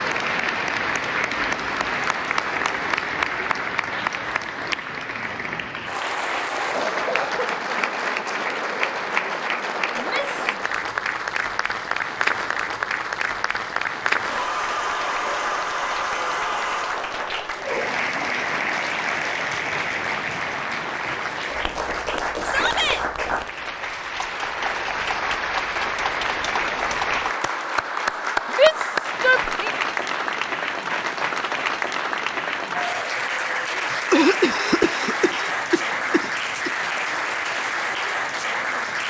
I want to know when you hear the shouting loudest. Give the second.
29 s.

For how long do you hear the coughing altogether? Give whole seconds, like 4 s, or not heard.
3 s.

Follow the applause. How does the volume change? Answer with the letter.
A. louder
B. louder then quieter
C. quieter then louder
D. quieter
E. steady
E.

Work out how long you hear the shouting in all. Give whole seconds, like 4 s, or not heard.
2 s.